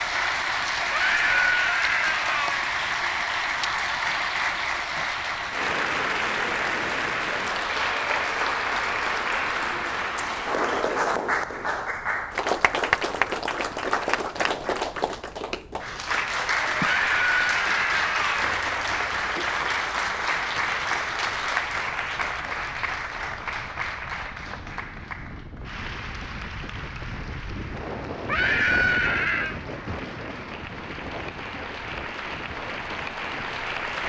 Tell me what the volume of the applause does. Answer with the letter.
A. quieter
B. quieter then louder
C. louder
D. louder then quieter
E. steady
A.